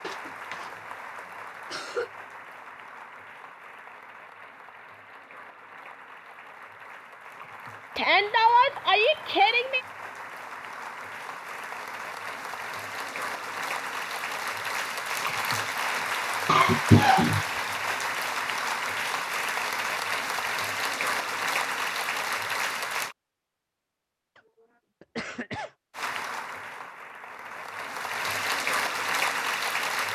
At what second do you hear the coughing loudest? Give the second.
17 s.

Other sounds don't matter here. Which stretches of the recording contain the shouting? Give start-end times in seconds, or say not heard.
8.0-9.8.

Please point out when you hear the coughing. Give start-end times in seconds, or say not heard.
0.0-2.1, 16.4-17.4, 25.0-25.7.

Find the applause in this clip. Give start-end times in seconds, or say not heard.
0.0-23.1, 25.9-30.1.